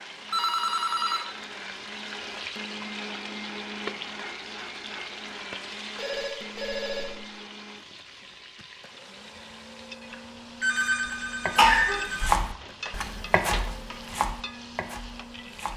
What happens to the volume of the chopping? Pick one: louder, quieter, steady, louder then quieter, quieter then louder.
louder then quieter.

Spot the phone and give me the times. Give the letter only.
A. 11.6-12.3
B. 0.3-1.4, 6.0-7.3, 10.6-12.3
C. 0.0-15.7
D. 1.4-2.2
B.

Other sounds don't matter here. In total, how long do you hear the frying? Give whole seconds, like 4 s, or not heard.
16 s.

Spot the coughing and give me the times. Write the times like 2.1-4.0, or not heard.
11.6-12.3.